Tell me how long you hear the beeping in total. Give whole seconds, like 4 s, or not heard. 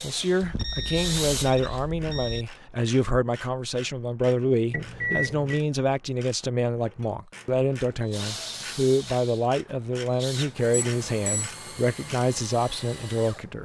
4 s.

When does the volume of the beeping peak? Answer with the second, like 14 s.
5 s.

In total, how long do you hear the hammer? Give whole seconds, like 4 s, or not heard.
not heard.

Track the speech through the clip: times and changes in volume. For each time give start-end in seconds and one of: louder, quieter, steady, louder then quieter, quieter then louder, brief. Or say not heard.
0.0-13.5 steady.